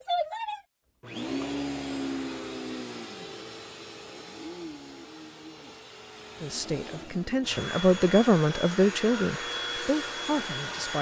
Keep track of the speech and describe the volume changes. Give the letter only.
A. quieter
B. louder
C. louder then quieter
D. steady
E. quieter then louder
C.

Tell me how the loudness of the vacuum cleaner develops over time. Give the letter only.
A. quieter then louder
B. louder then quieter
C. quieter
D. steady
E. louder
A.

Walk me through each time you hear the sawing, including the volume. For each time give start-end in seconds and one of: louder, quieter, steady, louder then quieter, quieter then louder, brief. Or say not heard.
not heard.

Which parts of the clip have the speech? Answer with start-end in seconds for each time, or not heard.
6.4-10.9.